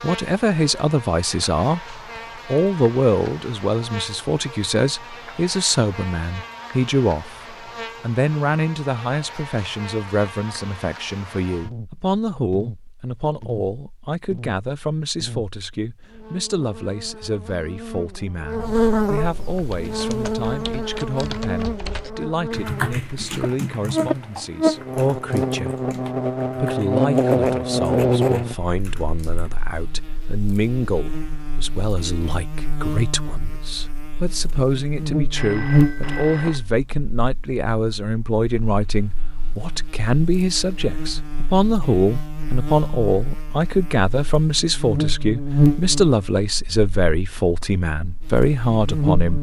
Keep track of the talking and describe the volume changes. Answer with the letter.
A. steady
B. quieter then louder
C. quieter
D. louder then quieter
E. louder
B.